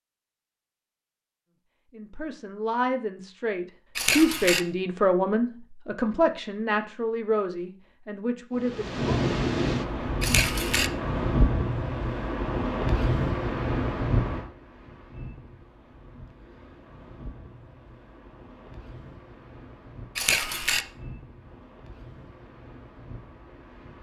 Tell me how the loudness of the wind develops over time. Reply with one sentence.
The volume of the wind goes down.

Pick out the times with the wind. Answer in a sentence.
The wind can be heard from 8.6 to 23.9 s.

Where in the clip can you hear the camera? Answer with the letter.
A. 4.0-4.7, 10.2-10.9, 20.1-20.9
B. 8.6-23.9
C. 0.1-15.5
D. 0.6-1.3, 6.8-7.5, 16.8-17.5
A.